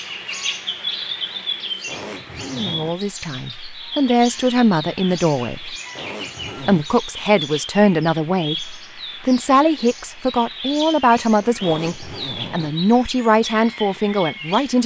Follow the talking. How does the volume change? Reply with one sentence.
The loudness of the talking stays about the same.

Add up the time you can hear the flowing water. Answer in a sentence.
You can't hear the flowing water here.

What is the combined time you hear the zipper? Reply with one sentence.
You can hear the zipper for 3 seconds altogether.